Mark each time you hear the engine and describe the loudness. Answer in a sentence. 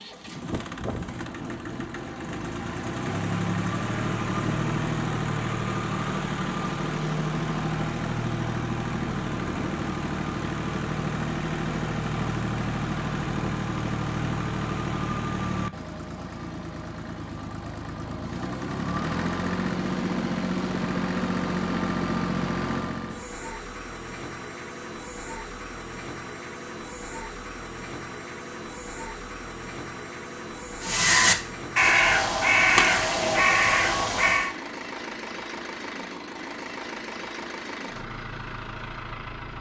The engine can be heard from 0.0 to 39.5 s, getting quieter.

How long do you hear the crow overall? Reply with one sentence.
You can hear the crow for 4 seconds altogether.